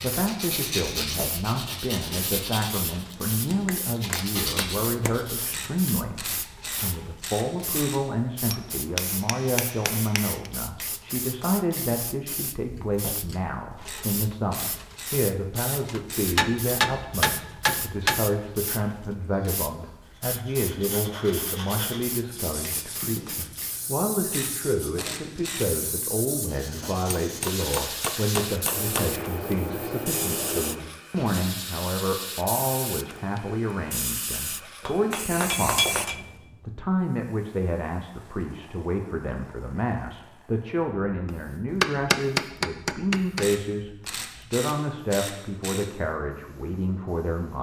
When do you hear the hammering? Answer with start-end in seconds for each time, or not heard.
3.6-5.1, 8.5-10.5, 16.4-18.2, 27.1-29.1, 34.9-36.2, 41.7-43.5.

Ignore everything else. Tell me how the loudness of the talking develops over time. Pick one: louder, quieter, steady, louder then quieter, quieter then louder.
steady.